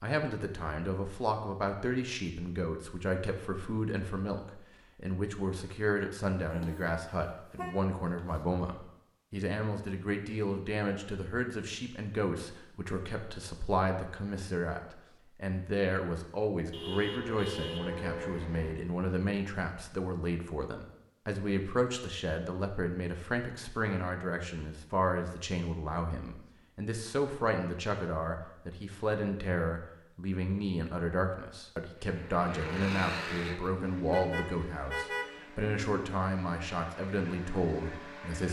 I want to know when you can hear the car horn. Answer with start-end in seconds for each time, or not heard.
6.5-8.4, 16.7-18.8, 34.0-35.3.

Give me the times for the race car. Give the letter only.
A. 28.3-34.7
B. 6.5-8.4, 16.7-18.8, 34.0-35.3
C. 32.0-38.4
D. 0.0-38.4
C.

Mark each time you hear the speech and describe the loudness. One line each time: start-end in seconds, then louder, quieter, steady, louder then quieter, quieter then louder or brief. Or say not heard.
0.0-38.4 steady.